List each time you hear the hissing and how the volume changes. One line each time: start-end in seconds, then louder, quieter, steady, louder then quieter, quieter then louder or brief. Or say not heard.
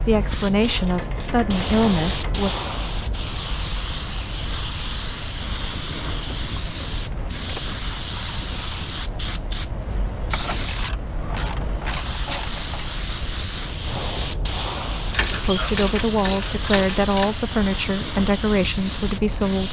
0.0-19.6 steady.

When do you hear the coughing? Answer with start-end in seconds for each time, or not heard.
not heard.